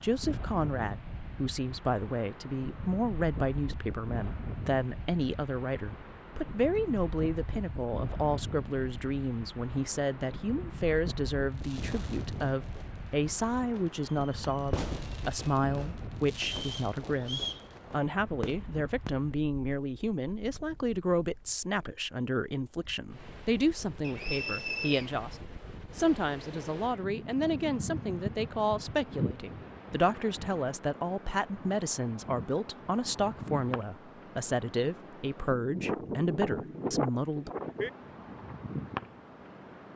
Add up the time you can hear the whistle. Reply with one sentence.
You can hear the whistle for 2 seconds altogether.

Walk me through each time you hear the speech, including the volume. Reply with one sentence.
The speech can be heard from 0.0 to 37.5 s, at a steady volume.